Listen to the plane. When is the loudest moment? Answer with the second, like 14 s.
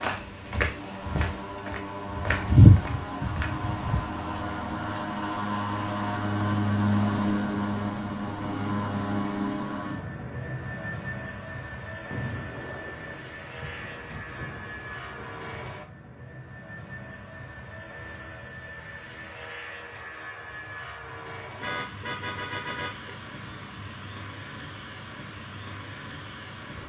7 s.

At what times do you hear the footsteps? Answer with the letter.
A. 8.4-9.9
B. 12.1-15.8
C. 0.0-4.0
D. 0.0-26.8
C.